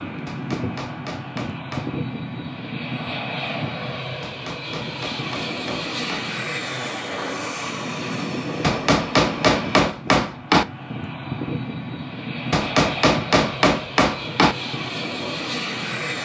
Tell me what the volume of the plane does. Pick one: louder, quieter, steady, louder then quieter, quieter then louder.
steady.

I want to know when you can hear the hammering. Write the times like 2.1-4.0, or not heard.
0.2-1.9, 4.2-6.2, 8.6-10.7, 12.5-14.6.